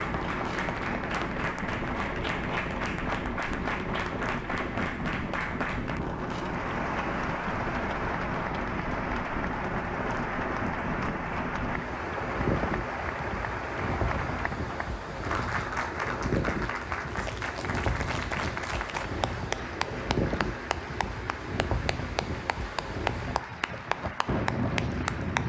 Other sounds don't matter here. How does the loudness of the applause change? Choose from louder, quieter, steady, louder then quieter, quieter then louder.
steady.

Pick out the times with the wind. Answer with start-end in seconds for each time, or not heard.
0.0-25.4.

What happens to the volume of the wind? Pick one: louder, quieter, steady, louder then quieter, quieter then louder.
steady.